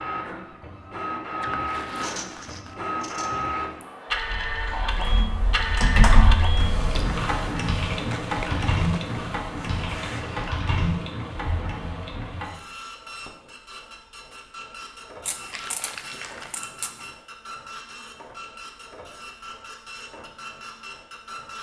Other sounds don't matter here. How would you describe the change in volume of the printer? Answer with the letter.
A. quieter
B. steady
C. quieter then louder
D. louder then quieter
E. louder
A.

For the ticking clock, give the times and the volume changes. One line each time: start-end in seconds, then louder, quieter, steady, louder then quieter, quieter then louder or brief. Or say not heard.
not heard.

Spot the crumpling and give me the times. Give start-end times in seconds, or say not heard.
1.4-2.8, 8.2-9.0, 15.5-16.6.